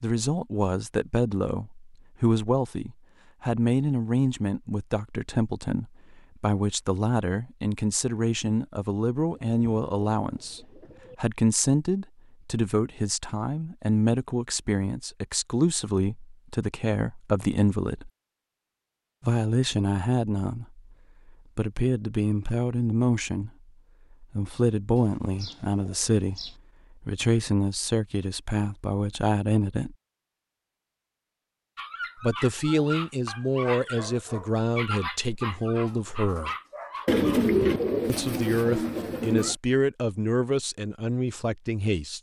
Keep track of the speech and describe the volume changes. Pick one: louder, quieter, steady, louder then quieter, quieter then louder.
steady.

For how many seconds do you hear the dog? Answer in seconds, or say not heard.
6 s.